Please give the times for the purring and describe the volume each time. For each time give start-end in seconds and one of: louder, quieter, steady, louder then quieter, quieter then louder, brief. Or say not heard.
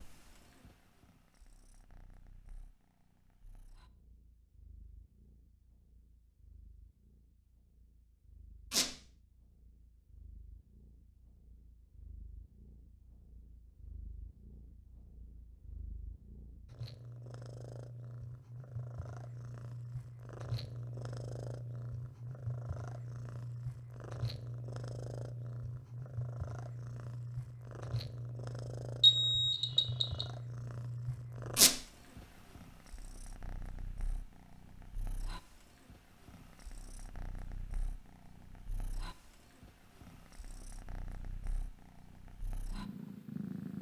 0.0-43.7 louder then quieter.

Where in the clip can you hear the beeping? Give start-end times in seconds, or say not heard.
29.0-30.2.